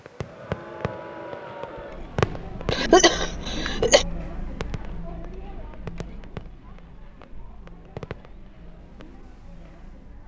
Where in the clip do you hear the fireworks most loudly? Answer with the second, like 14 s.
2 s.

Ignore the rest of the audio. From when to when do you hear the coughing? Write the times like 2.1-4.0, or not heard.
2.7-4.0.